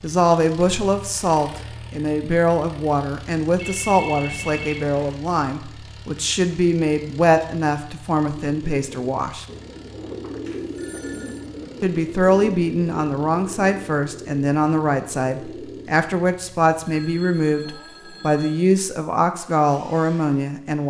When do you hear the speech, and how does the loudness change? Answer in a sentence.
You can hear the speech from 0.0 to 9.4 s, at a steady volume; and from 11.8 to 20.8 s, at a steady volume.